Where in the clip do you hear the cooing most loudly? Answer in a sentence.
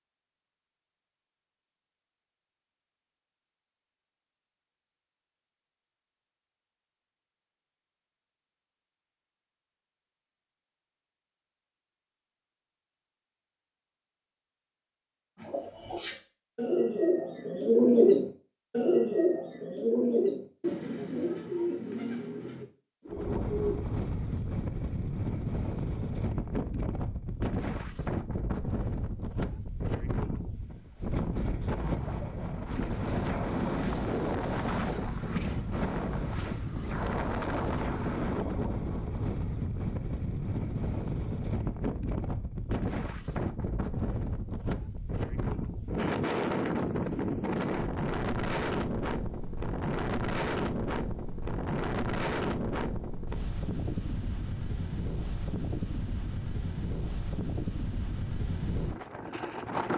The volume of the cooing peaks at 18 seconds.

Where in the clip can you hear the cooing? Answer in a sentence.
The cooing can be heard from 15.3 to 24.6 s.